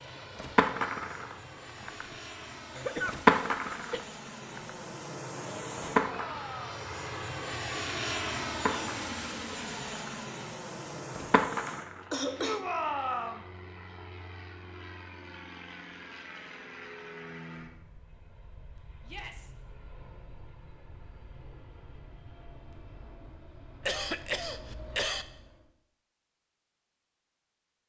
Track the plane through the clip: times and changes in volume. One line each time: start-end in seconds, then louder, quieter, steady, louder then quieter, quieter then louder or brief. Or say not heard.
0.0-25.7 louder then quieter.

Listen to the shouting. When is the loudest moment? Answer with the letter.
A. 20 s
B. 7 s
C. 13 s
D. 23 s
C.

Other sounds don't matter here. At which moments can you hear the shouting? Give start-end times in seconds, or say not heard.
6.0-6.9, 12.3-13.4, 19.1-19.5.